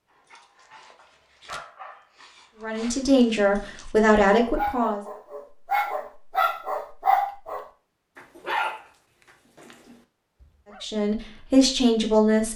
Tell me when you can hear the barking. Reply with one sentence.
The barking can be heard from 0.1 to 10.8 s.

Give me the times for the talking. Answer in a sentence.
You can hear the talking from 2.6 to 5.0 s and from 10.8 to 12.5 s.